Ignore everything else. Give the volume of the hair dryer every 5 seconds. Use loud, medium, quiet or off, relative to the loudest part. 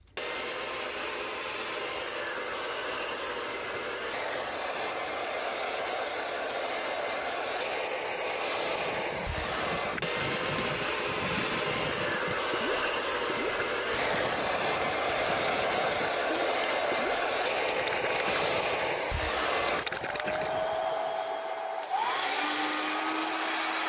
medium, loud, loud, loud, loud.